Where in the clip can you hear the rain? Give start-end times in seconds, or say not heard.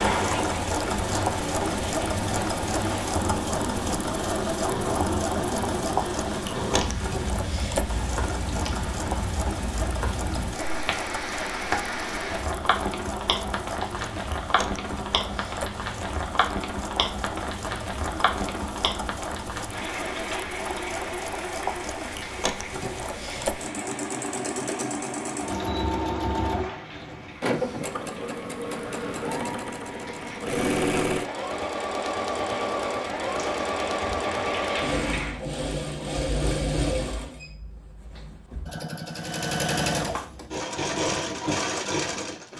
0.0-35.5.